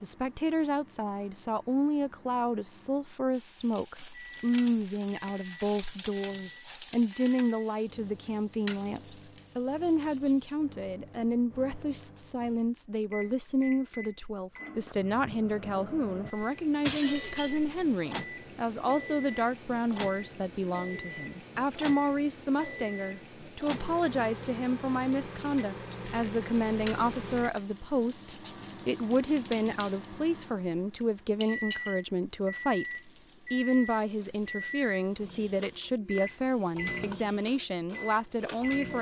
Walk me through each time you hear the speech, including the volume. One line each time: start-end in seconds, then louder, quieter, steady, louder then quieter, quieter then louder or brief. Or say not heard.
0.0-38.9 steady.